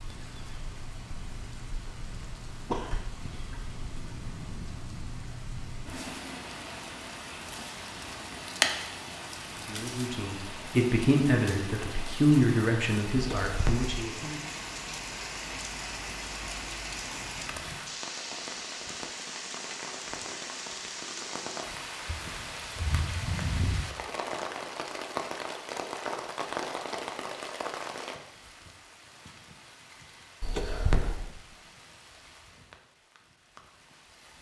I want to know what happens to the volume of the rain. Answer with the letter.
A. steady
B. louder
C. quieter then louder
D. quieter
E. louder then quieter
E.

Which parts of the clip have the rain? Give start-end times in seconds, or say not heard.
0.0-34.3.